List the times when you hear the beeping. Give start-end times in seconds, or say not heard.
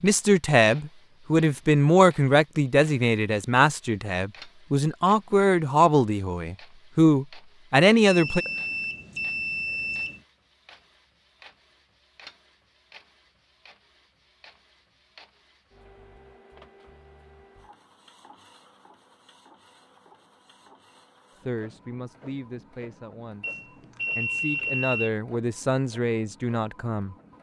8.1-10.2, 23.4-25.1.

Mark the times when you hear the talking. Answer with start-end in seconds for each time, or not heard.
0.0-8.4, 21.4-27.3.